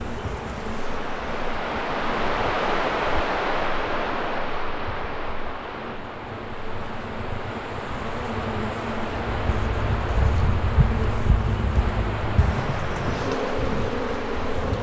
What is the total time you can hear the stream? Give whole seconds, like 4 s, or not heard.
15 s.